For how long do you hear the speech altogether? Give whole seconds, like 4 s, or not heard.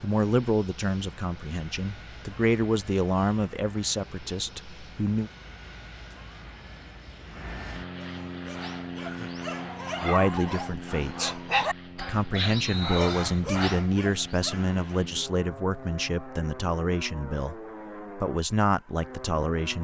15 s.